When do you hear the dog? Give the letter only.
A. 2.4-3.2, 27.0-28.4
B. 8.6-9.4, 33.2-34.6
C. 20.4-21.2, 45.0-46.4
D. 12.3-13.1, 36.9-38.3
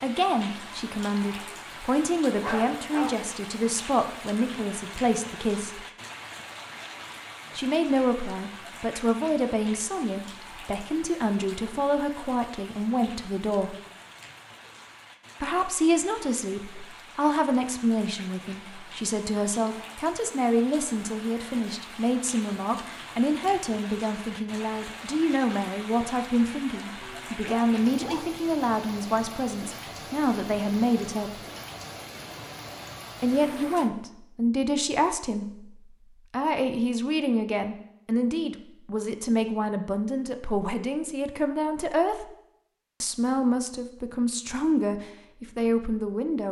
A.